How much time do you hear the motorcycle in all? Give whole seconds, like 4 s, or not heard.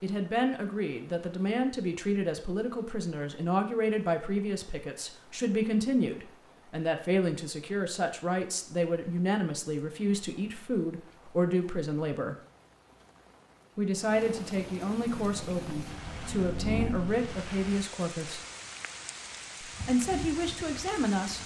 2 s.